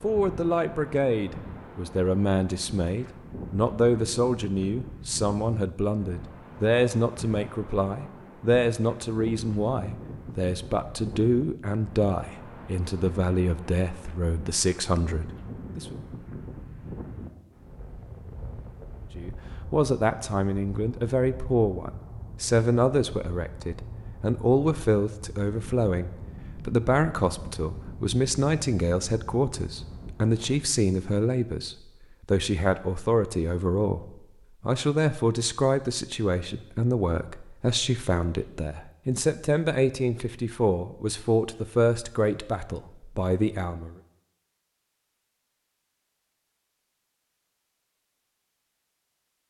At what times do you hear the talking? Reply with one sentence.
You can hear the talking from 0.0 to 15.9 s and from 19.1 to 44.0 s.